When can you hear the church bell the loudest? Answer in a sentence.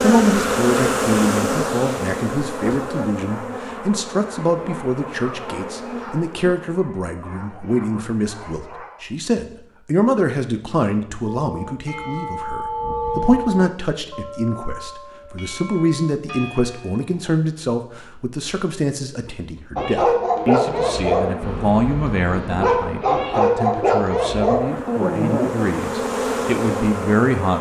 The loudest moment of the church bell is at 13 seconds.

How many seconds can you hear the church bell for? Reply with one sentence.
The church bell can be heard for 6 seconds in total.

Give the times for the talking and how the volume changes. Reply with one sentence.
You can hear the talking from 0.0 to 27.5 s, at a steady volume.